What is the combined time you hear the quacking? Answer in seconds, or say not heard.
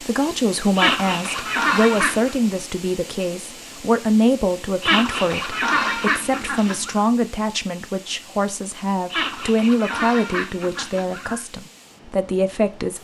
6 s.